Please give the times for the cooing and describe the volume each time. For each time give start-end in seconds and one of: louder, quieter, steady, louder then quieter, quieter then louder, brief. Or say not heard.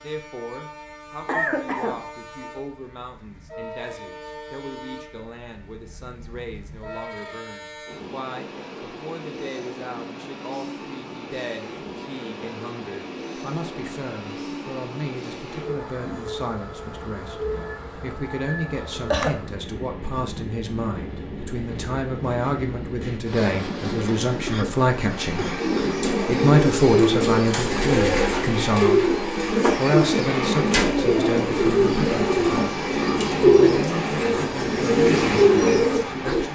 25.6-36.5 steady.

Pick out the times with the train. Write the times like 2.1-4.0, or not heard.
0.0-36.5.